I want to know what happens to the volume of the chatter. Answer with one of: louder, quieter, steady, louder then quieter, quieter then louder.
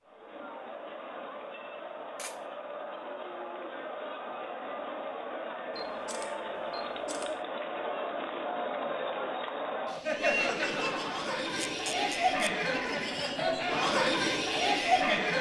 louder.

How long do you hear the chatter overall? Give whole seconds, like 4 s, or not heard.
15 s.